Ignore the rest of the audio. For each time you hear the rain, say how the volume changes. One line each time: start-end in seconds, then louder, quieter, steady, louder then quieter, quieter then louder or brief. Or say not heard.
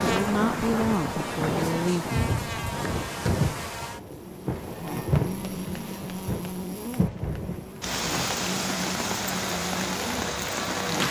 0.0-11.0 steady.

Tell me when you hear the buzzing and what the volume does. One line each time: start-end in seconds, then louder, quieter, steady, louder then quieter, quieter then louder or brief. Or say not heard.
0.0-11.0 steady.